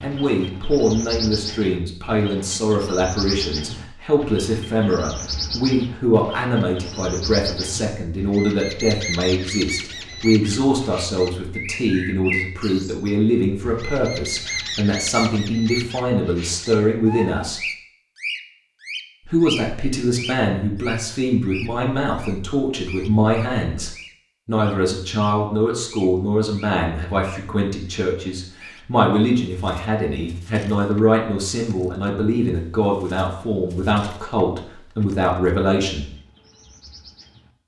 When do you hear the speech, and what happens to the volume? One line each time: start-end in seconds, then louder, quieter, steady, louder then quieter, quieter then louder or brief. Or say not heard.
0.0-17.6 steady
19.2-36.1 steady.